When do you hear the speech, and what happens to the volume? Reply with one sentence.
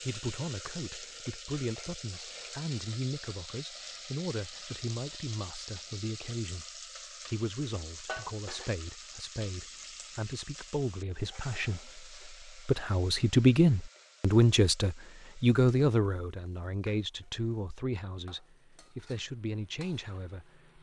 You can hear the speech from 0.0 to 20.7 s, getting louder then quieter.